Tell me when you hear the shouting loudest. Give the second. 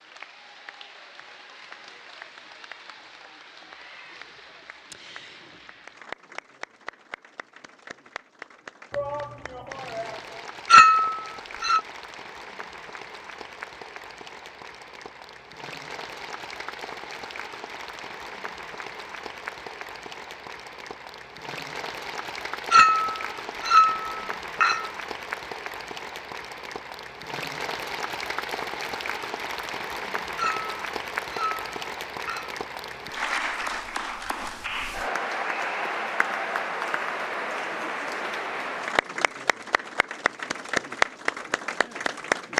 9 s.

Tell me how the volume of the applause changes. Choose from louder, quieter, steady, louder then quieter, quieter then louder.
louder.